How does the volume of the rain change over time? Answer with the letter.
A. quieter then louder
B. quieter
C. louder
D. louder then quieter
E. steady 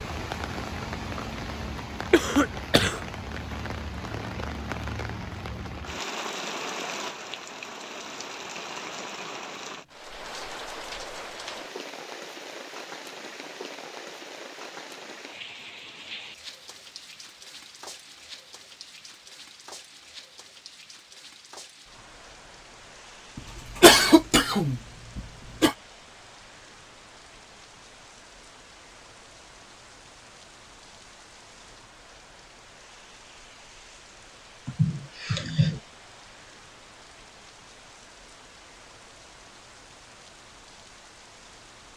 B.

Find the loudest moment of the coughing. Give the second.
24 s.